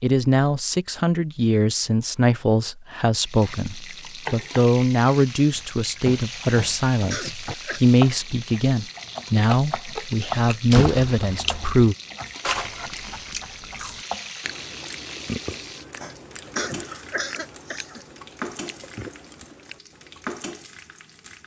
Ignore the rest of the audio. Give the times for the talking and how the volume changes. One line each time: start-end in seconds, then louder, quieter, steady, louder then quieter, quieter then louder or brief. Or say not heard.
0.0-11.9 steady.